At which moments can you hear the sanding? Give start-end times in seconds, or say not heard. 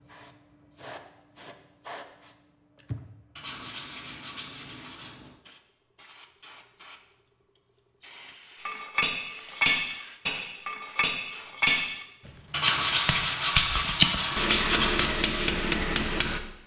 3.4-5.2, 12.5-15.2.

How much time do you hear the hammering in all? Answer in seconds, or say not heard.
8 s.